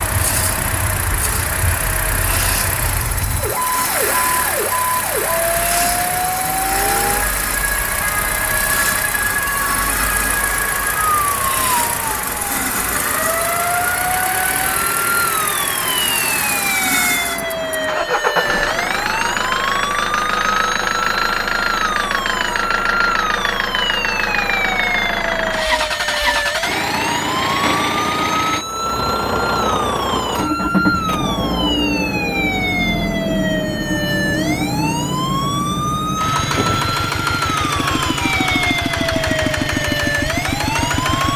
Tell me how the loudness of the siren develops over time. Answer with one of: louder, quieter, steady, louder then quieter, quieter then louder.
steady.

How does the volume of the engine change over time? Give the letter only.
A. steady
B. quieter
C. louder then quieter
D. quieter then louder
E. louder
A.